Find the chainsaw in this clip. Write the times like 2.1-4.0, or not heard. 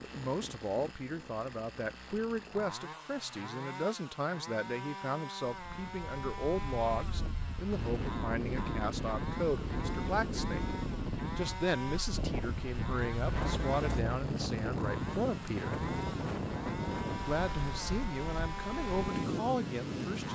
0.0-20.3.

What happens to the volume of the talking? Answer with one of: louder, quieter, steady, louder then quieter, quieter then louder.
steady.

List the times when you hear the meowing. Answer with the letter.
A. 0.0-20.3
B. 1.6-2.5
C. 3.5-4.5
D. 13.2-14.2
D.